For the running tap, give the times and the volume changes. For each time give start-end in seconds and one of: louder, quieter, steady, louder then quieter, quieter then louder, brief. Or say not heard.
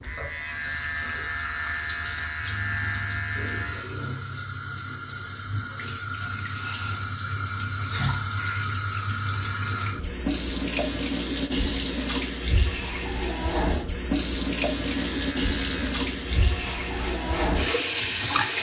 0.0-18.5 louder.